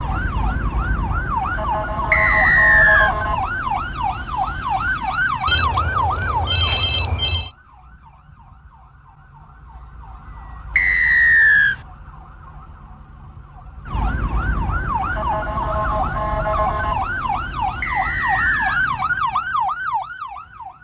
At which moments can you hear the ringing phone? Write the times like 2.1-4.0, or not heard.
5.5-7.5.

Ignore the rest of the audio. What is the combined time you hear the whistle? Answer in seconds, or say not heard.
3 s.